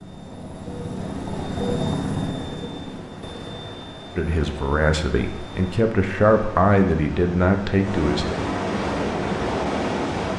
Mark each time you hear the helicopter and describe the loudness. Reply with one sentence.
The helicopter can be heard from 0.0 to 5.8 s, getting louder then quieter.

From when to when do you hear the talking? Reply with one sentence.
You can hear the talking from 4.2 to 8.2 s.